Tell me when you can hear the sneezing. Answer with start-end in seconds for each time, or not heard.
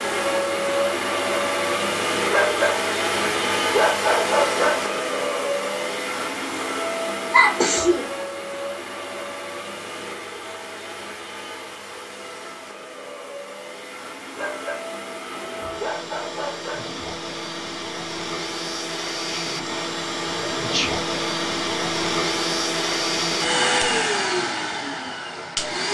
7.3-8.1, 19.3-21.1.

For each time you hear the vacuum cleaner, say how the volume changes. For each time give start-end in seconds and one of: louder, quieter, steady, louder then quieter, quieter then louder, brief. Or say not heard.
0.0-25.9 quieter then louder.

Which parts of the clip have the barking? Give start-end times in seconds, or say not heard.
2.3-4.8, 14.3-16.9.